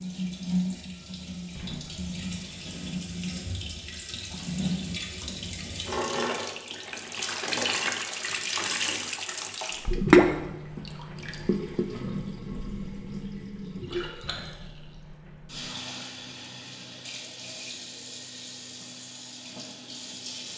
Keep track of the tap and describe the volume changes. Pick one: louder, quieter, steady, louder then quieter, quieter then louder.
louder then quieter.